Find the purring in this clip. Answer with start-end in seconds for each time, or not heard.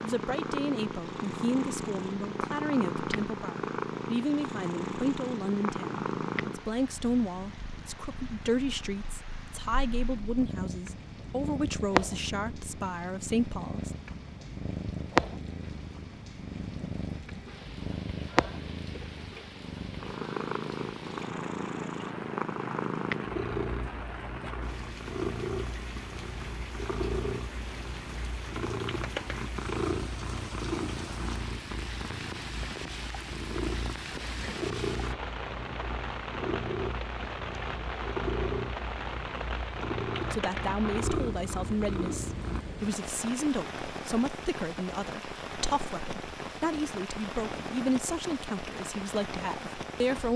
0.0-42.6.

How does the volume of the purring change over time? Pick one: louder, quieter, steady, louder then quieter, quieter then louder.
steady.